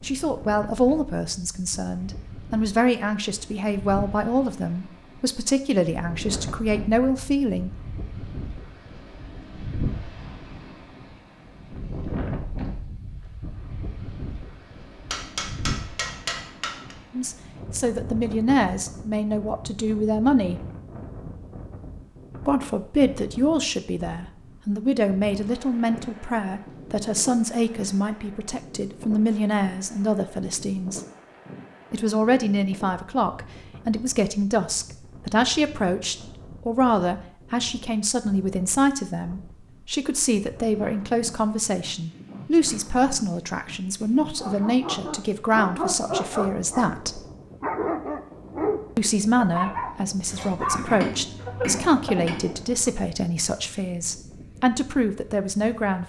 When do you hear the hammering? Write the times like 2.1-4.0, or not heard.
15.1-16.9, 50.2-52.6.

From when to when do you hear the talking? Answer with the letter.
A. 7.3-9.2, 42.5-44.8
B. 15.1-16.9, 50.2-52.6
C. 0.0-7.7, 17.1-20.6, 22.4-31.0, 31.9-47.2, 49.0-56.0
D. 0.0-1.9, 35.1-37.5
C.